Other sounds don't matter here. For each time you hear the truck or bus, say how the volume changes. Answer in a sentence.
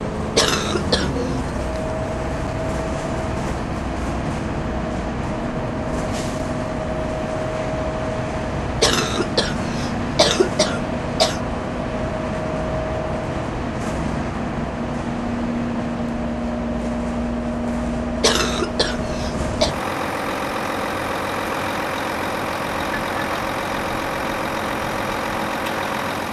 The truck or bus can be heard from 0.0 to 26.2 s, at a steady volume.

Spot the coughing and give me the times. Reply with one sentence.
The coughing can be heard from 0.3 to 1.4 s, from 8.8 to 11.4 s and from 18.2 to 19.8 s.